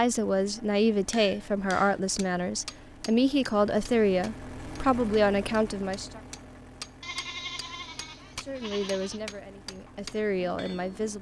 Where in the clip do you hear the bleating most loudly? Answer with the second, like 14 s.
7 s.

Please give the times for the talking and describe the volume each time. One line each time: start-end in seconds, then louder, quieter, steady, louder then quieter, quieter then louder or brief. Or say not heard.
0.0-6.2 steady
8.4-11.1 brief.